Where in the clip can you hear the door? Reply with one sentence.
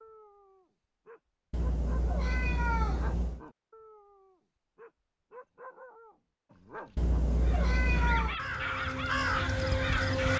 The door can't be heard in this clip.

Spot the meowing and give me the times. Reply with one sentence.
You can hear the meowing from 1.5 to 3.4 s and from 7.0 to 8.4 s.